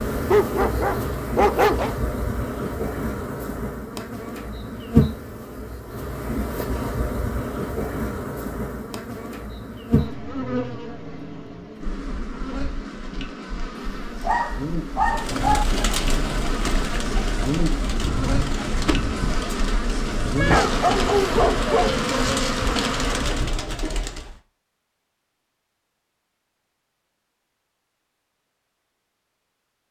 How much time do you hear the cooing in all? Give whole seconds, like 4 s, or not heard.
9 s.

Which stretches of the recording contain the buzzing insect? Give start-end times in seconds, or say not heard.
0.0-23.6.